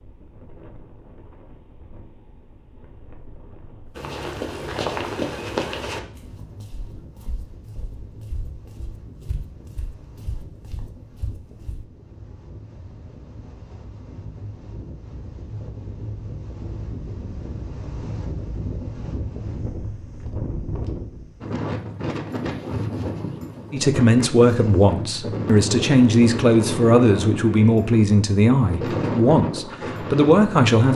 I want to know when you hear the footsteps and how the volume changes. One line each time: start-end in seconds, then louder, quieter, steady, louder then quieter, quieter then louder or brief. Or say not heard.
4.0-11.8 quieter then louder.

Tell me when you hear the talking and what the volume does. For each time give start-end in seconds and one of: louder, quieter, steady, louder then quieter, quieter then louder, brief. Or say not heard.
23.7-30.9 steady.